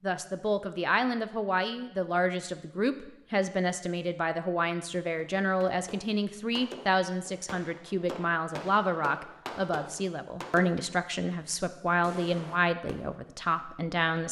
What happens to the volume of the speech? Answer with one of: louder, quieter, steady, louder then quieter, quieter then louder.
steady.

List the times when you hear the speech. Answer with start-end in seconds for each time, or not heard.
0.0-14.2.